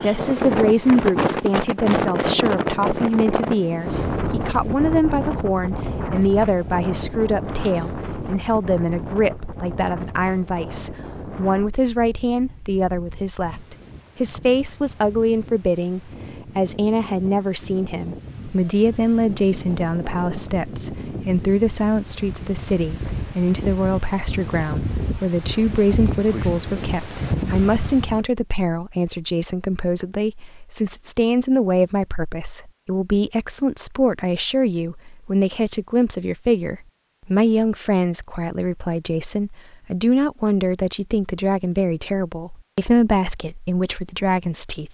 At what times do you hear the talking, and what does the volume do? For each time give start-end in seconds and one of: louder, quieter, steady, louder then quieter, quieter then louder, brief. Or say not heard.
0.0-44.8 steady.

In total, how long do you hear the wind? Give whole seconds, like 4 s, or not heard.
28 s.